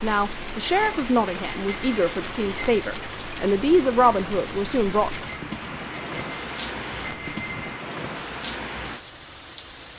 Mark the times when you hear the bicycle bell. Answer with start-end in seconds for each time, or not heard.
0.7-2.9, 5.1-7.8.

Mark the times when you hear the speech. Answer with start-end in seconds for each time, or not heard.
0.0-5.1.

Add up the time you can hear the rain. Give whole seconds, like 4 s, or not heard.
10 s.